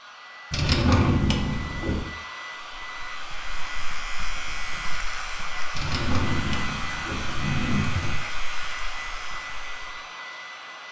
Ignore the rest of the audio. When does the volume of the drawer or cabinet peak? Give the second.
1 s.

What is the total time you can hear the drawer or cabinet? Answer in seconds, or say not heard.
4 s.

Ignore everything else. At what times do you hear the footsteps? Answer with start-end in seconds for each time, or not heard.
not heard.